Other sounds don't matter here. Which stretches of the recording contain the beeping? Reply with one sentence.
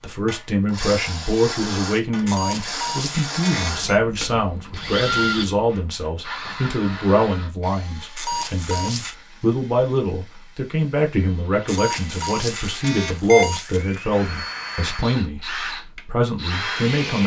The beeping can be heard from 2.2 to 4.0 s, from 8.2 to 9.2 s and from 11.7 to 13.9 s.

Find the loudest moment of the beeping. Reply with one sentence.
The loudest moment of the beeping is at 13 seconds.